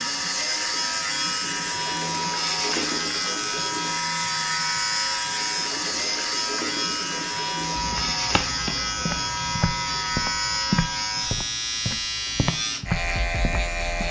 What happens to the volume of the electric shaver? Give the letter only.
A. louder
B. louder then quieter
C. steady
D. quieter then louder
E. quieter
C.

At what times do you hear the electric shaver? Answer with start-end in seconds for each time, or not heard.
0.0-14.0.